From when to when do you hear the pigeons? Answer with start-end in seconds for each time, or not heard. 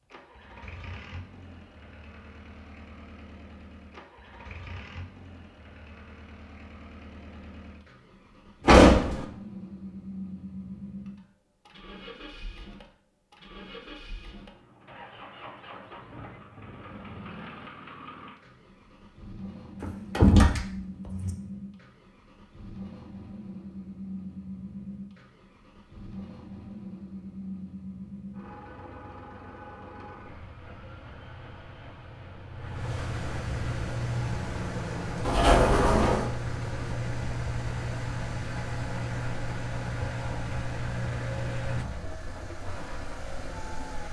not heard.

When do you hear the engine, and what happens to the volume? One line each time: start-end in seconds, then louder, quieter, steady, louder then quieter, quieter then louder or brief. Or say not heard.
0.0-44.0 louder.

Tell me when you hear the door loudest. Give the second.
9 s.